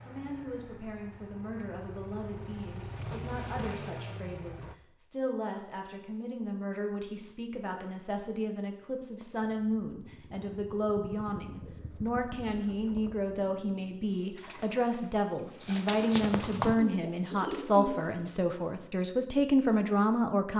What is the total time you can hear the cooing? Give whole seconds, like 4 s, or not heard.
4 s.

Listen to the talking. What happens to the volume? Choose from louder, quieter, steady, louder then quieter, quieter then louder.
louder.